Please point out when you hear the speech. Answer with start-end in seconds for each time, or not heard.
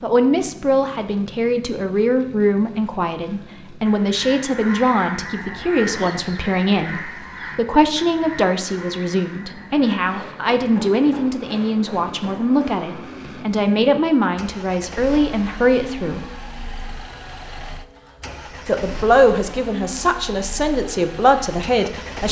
0.0-16.2, 18.6-22.2.